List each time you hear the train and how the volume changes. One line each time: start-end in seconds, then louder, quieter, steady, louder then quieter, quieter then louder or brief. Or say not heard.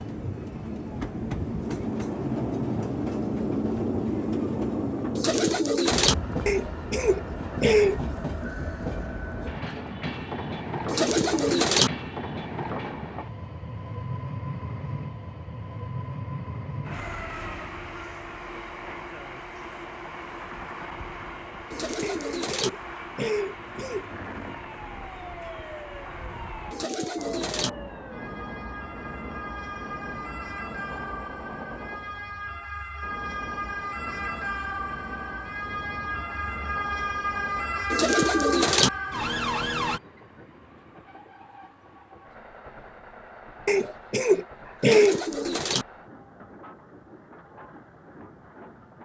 0.0-49.0 quieter.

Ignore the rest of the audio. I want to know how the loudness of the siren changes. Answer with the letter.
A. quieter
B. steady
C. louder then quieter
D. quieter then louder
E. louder
E.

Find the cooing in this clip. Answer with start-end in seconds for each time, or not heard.
5.2-6.2, 10.8-11.9, 21.7-22.7, 26.7-27.7, 37.9-38.9, 44.8-45.9.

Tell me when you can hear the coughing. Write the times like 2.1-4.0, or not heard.
6.5-8.0, 22.0-24.1, 43.6-45.2.